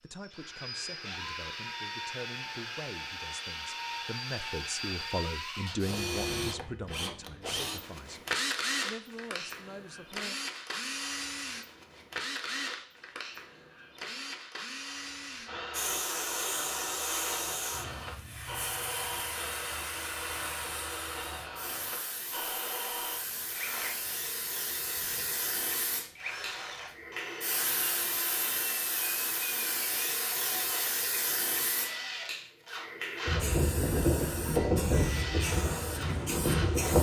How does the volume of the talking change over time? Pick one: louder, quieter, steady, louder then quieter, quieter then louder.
louder then quieter.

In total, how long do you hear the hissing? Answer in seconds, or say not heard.
21 s.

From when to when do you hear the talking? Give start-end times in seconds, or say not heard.
0.0-10.3.